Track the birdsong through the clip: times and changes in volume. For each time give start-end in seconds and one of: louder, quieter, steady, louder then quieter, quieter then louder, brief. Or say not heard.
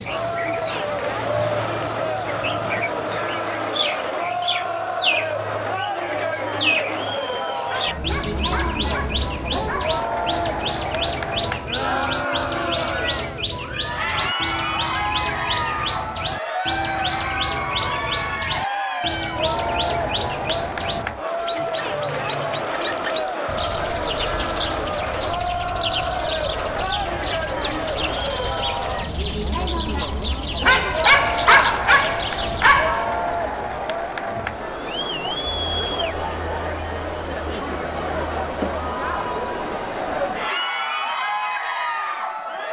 0.0-33.0 steady.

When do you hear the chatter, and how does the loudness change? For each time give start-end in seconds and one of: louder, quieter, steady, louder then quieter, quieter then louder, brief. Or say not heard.
0.0-42.6 steady.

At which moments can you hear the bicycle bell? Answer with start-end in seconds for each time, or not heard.
not heard.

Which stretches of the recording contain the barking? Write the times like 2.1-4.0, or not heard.
7.7-10.0, 30.6-33.4.